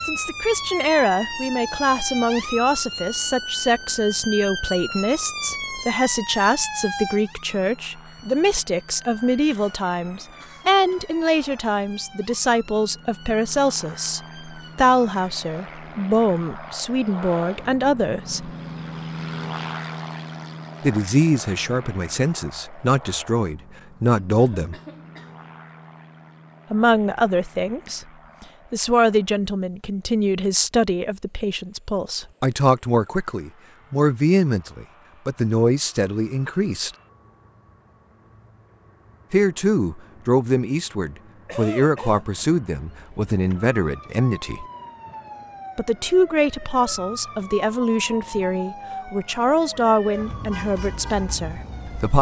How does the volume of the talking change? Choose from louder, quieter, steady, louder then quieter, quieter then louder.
steady.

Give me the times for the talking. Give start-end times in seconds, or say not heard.
0.1-18.5, 20.8-24.8, 26.7-36.9, 39.3-44.6, 45.8-52.1.